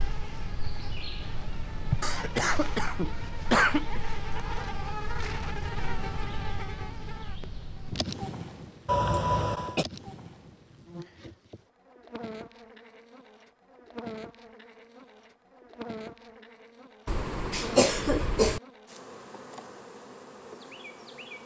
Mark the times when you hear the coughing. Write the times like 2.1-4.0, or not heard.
2.0-4.0, 8.8-9.8, 17.1-18.6.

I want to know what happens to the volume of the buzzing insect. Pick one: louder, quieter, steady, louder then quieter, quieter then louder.
quieter.